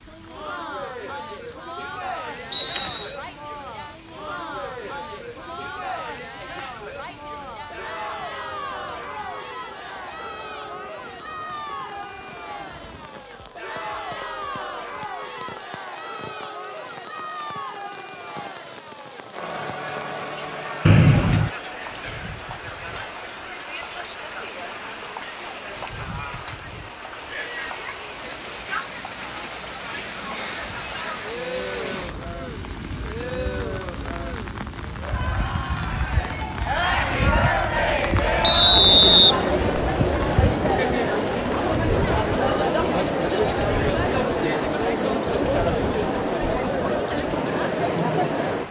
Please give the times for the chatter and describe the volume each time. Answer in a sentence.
You can hear the chatter from 0.1 to 48.6 s, getting louder.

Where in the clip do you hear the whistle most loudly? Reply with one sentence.
The volume of the whistle peaks at 39 seconds.